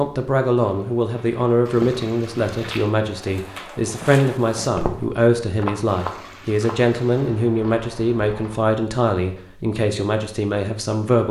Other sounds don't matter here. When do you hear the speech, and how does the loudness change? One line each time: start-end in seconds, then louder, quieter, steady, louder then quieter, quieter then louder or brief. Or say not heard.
0.0-11.2 steady.